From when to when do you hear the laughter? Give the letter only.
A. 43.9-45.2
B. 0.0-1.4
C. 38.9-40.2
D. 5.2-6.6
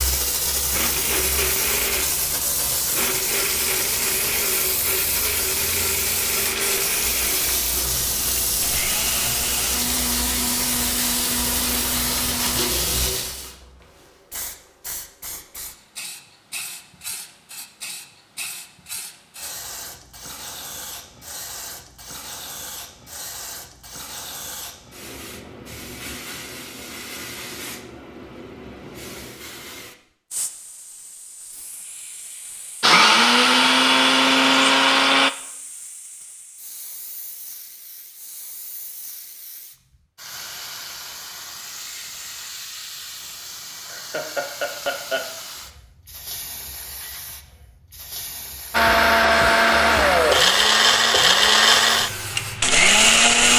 A.